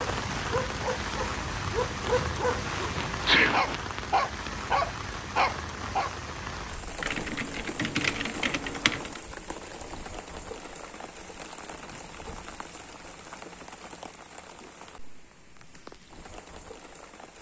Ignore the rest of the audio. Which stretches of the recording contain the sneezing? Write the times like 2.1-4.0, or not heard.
2.6-4.5.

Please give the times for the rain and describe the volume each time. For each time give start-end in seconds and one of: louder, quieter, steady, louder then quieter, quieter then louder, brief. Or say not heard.
0.0-17.3 quieter.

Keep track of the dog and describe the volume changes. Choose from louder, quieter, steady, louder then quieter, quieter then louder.
louder.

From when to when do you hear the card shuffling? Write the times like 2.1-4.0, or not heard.
not heard.